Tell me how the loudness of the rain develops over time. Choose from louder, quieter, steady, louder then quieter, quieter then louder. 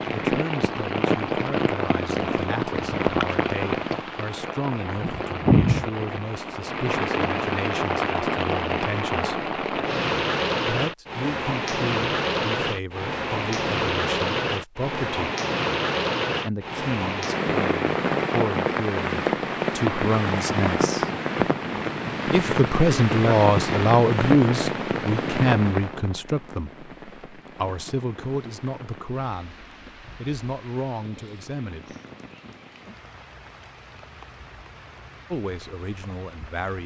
quieter.